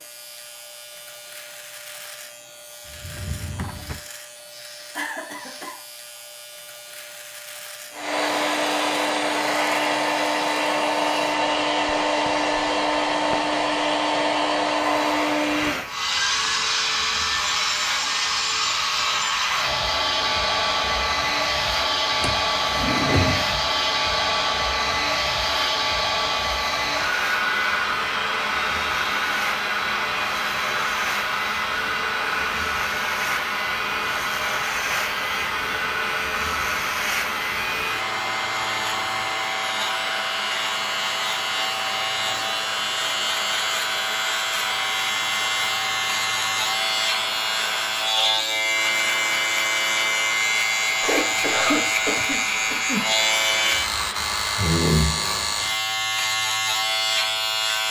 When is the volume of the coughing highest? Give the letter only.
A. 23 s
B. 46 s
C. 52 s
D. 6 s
C.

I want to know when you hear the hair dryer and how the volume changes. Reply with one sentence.
You can hear the hair dryer from 7.9 to 54.8 s, getting quieter.